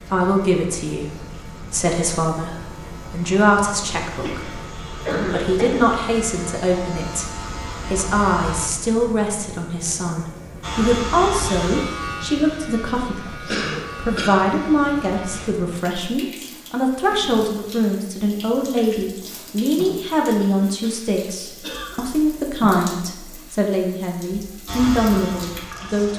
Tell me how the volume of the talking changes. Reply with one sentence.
The volume of the talking stays about the same.